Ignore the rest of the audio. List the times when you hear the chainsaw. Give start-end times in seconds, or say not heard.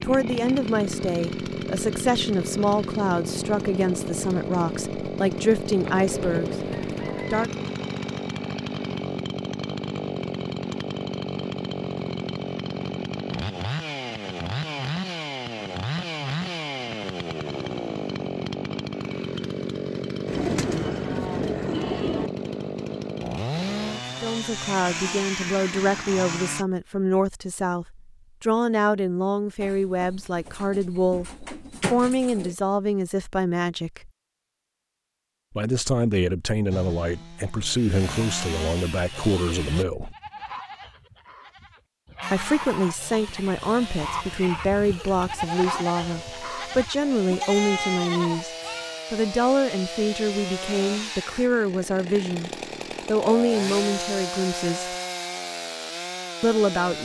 0.0-26.6, 36.7-39.9, 42.2-57.0.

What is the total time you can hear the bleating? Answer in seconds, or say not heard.
9 s.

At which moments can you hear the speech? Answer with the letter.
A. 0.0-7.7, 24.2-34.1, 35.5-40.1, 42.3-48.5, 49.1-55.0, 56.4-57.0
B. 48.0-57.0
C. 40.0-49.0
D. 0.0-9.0
A.